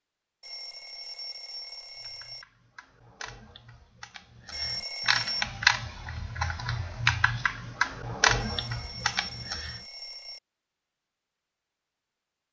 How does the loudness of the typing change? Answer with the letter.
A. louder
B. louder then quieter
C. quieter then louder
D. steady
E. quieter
A.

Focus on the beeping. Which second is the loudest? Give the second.
5 s.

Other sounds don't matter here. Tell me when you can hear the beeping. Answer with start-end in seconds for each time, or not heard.
0.4-2.5, 4.5-5.5, 8.3-10.4.